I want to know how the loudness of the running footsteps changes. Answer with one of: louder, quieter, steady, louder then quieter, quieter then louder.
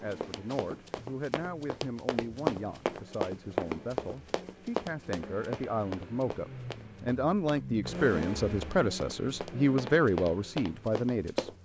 quieter then louder.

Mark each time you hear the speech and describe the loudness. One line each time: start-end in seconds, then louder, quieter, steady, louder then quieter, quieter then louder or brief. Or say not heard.
0.0-11.5 louder.